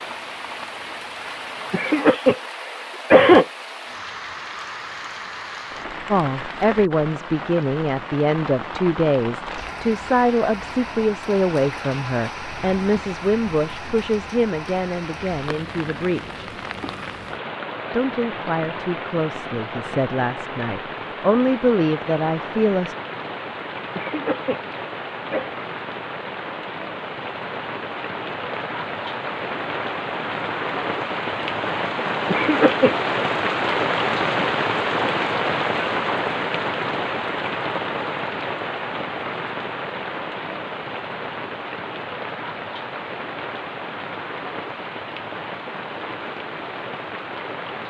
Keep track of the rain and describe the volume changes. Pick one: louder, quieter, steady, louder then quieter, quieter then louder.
louder then quieter.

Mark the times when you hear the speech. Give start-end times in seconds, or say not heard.
6.1-16.4, 17.9-22.9.